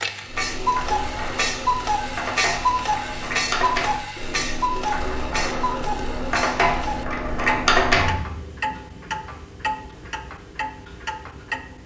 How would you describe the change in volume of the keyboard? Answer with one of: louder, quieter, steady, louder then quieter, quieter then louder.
louder.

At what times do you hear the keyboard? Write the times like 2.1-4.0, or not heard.
0.2-8.2.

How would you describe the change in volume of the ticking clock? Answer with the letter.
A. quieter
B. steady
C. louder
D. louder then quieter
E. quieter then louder
A.